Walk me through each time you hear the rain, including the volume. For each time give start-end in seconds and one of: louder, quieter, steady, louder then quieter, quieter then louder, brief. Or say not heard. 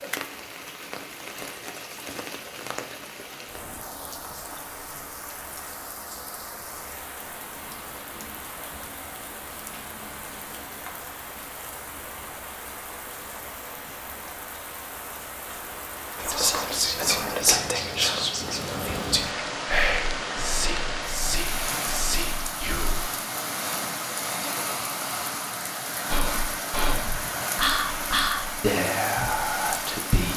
0.0-30.3 louder.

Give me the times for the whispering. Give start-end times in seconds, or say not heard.
16.1-23.1, 26.1-30.3.